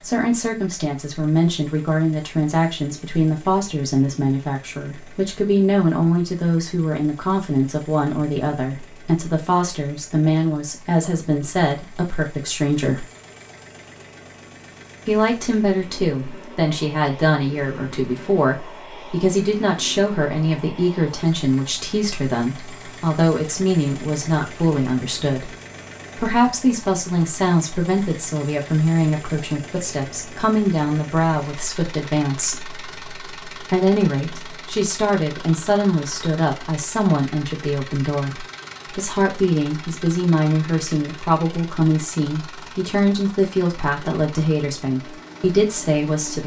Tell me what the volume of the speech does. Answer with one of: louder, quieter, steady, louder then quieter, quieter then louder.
steady.